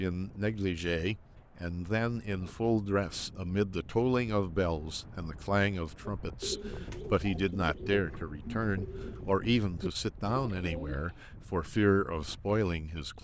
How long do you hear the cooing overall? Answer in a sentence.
You can hear the cooing for 5 seconds altogether.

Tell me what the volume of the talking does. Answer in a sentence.
The volume of the talking stays about the same.